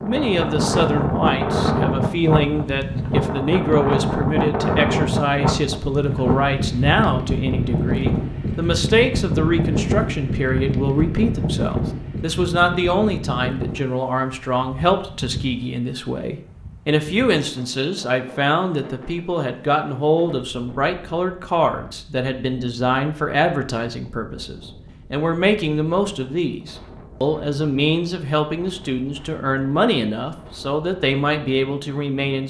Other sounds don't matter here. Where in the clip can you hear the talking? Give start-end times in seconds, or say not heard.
0.0-32.4.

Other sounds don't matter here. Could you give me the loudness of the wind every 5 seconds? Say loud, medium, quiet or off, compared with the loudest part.
loud, loud, medium, quiet, quiet, quiet, quiet.